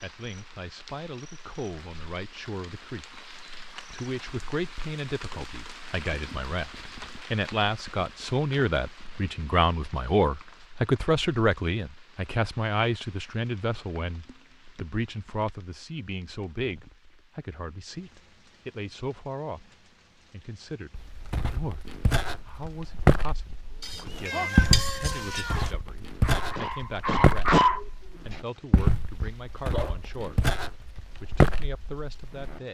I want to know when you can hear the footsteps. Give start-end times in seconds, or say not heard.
20.9-32.6.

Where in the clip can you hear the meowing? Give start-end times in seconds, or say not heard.
23.8-25.8.